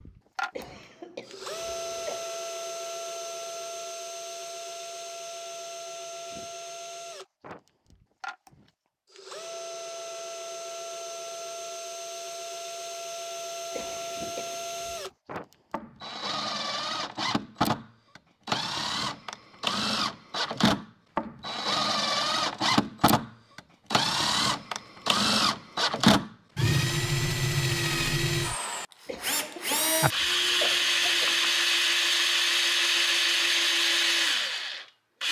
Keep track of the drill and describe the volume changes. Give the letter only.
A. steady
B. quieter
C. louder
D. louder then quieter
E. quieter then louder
C.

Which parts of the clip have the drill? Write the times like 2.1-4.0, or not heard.
0.0-35.2.